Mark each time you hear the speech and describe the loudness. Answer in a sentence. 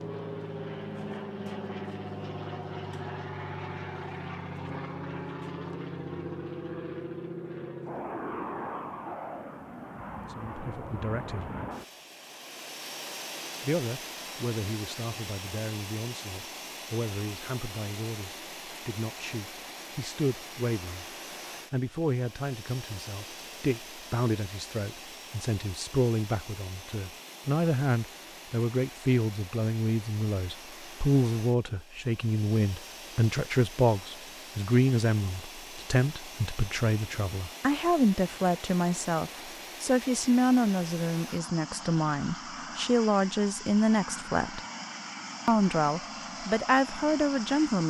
The speech can be heard briefly from 10.3 to 11.5 s; from 13.6 to 44.6 s, getting louder; and briefly from 45.5 to 47.8 s.